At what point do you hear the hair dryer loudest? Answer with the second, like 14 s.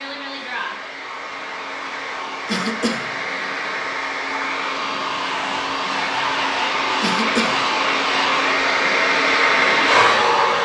10 s.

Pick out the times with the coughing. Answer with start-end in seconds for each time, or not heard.
2.5-3.1, 7.0-7.7.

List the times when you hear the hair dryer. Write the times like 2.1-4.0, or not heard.
0.0-10.5.